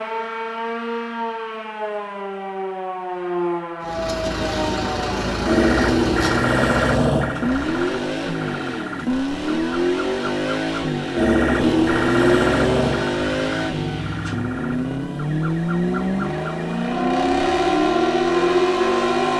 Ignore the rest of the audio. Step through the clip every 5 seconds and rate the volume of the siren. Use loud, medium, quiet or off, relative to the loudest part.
medium, loud, loud, loud.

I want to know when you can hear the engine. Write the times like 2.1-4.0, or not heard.
3.8-19.3.